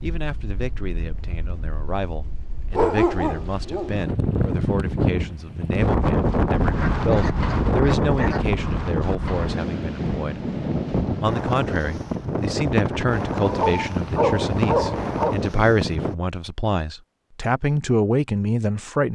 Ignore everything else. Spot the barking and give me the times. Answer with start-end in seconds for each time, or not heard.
2.7-4.0, 6.7-8.5, 13.4-15.3.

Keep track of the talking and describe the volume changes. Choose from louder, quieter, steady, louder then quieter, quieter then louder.
louder.